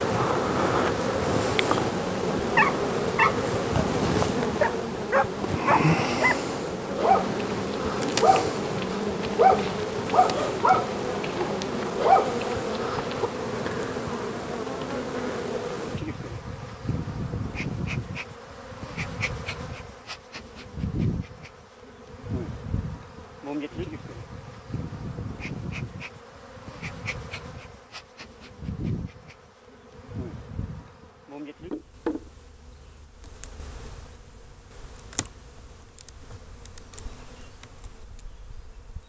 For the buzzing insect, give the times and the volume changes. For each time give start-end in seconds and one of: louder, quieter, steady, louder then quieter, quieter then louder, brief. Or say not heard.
0.0-39.0 quieter.